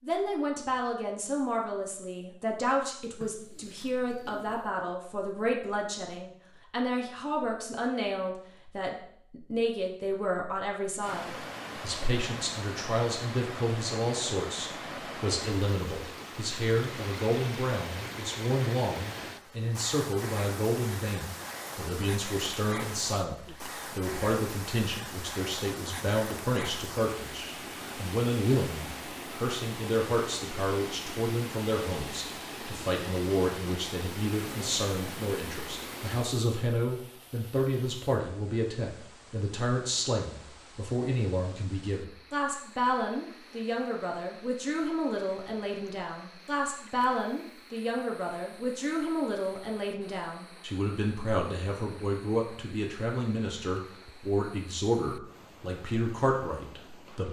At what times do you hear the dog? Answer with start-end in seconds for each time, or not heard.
not heard.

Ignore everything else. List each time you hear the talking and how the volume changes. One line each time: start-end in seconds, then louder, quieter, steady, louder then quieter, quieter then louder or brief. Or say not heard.
0.0-57.2 steady.